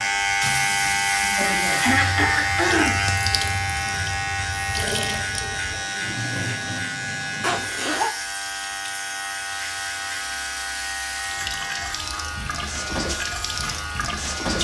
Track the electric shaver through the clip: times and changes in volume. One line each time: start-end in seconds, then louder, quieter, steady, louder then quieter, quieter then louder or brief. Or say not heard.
0.0-14.6 quieter.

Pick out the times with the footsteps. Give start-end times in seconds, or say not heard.
not heard.